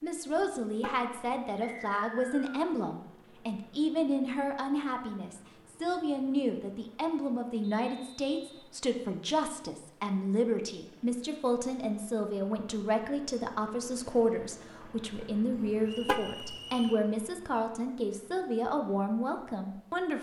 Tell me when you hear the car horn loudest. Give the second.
16 s.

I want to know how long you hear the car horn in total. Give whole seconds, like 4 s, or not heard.
2 s.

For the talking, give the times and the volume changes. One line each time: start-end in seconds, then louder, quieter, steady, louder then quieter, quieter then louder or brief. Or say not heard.
0.0-20.1 steady.